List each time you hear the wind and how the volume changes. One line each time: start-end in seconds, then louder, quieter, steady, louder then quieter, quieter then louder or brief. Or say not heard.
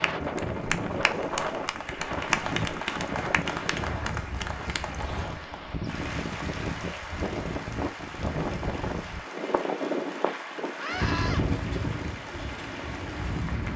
0.0-13.7 steady.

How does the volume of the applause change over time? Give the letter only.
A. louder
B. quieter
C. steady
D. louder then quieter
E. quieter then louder
B.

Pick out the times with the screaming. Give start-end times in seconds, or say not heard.
10.8-11.4.